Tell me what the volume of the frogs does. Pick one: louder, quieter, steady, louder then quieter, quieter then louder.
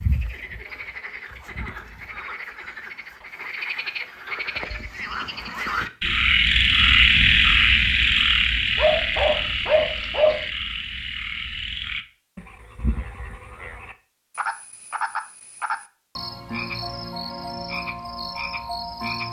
louder then quieter.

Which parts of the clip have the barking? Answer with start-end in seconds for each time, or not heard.
8.8-10.5.